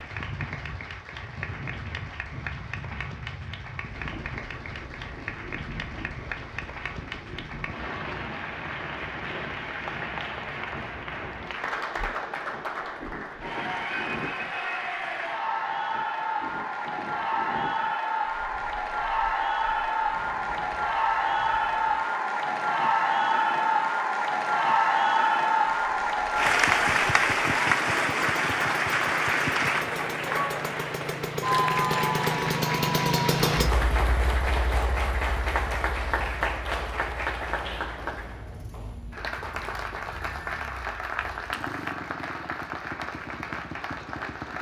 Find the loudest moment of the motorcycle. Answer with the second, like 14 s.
33 s.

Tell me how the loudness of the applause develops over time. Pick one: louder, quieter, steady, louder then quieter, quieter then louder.
louder then quieter.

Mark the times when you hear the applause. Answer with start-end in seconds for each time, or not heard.
0.0-44.5.